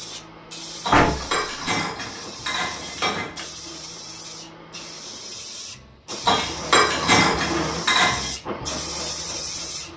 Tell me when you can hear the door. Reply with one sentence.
The door can be heard from 0.9 to 2.1 s.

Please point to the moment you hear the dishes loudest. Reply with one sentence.
The loudest moment of the dishes is at 7 seconds.